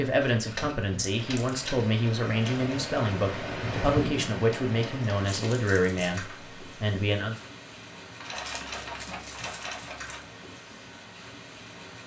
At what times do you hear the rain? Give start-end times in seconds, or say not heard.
0.0-12.0.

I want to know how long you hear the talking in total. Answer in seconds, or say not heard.
7 s.